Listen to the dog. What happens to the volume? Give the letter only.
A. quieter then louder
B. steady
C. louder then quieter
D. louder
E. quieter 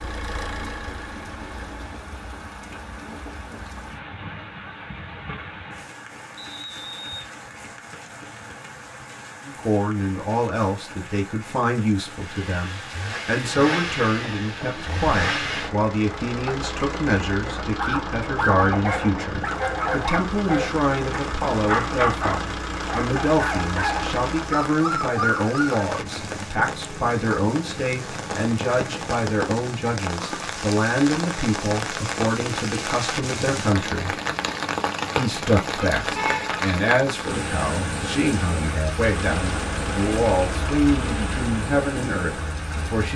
B.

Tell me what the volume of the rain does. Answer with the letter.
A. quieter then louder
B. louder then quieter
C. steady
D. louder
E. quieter
D.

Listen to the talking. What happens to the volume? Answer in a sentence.
The loudness of the talking stays about the same.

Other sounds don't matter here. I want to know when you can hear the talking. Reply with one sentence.
You can hear the talking from 9.4 to 34.1 s and from 35.1 to 43.1 s.